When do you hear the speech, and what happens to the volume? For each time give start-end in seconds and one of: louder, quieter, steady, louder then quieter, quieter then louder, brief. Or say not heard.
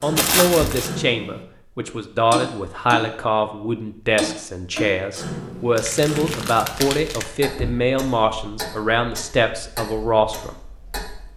0.0-10.6 steady.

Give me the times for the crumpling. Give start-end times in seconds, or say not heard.
0.1-0.9, 5.8-7.3.